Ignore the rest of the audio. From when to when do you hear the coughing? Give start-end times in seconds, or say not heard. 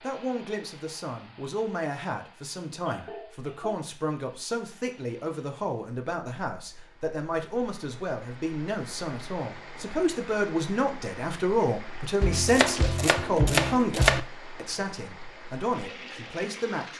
2.7-3.9.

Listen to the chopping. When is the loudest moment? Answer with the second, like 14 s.
14 s.